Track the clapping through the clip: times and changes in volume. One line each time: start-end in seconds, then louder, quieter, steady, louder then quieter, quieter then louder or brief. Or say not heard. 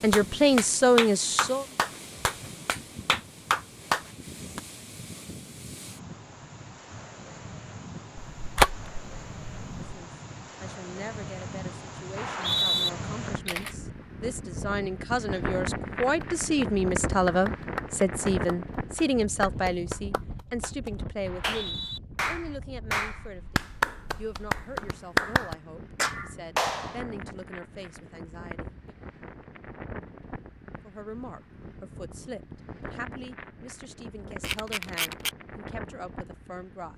0.0-4.6 quieter then louder
16.0-27.0 louder.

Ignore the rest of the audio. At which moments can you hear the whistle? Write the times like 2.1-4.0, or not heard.
12.2-12.9, 21.2-22.0.